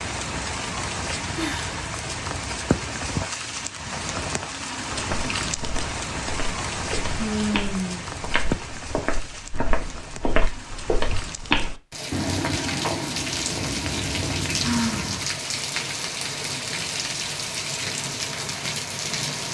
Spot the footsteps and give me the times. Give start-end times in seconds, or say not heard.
4.9-15.3.